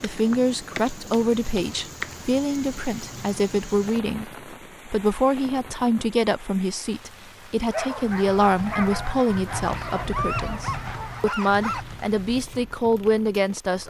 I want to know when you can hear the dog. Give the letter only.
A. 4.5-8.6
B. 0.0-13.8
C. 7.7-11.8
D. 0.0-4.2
C.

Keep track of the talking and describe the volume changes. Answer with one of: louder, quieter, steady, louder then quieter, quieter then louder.
steady.